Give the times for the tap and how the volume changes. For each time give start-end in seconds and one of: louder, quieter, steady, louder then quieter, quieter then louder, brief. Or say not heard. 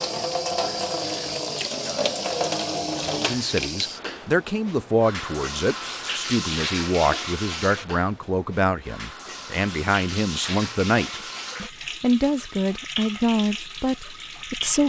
0.0-14.8 quieter.